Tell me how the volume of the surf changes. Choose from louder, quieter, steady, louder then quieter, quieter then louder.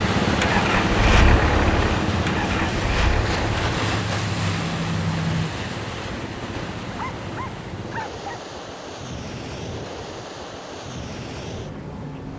quieter.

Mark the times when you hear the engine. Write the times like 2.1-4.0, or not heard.
0.2-5.5.